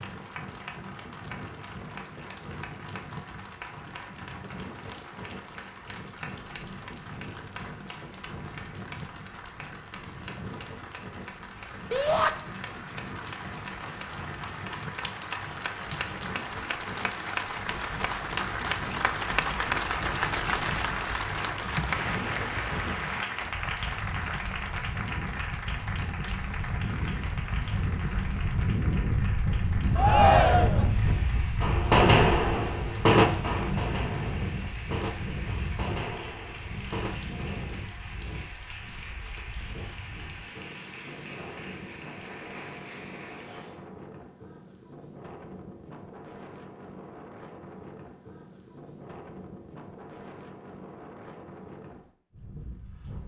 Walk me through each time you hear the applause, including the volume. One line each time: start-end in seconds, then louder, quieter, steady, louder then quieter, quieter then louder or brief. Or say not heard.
0.0-43.9 louder then quieter.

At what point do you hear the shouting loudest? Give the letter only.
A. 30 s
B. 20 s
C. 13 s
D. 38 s
A.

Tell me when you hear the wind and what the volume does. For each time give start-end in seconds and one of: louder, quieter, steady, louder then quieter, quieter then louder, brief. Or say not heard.
0.0-53.2 louder then quieter.